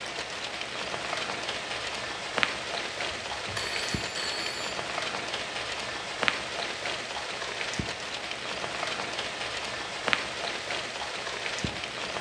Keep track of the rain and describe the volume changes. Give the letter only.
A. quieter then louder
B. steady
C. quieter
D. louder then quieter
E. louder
B.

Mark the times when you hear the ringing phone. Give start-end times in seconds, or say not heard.
3.2-4.8.